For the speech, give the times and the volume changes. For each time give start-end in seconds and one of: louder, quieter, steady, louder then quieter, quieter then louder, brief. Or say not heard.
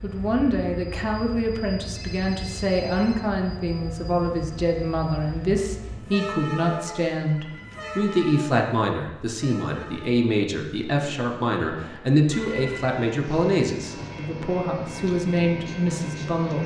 0.0-16.6 steady.